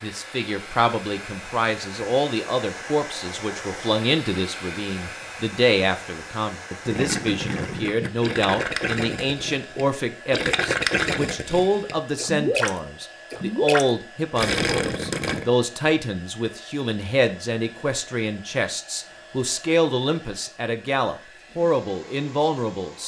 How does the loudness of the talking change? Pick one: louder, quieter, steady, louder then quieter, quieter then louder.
steady.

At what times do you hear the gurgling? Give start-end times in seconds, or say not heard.
6.8-15.4.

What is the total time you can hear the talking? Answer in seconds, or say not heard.
23 s.